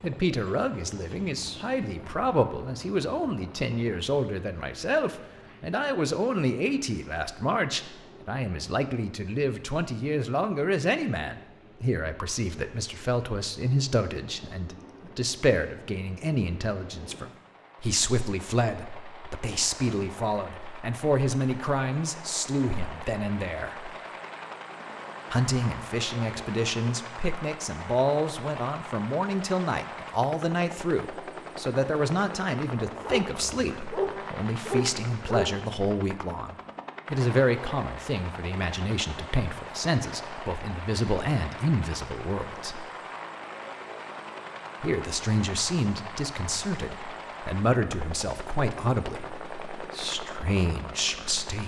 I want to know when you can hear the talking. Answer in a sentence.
You can hear the talking from 0.0 to 23.9 s, from 25.3 to 42.9 s and from 44.8 to 51.6 s.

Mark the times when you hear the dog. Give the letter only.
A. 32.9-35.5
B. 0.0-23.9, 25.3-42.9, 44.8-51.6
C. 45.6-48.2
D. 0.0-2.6
A.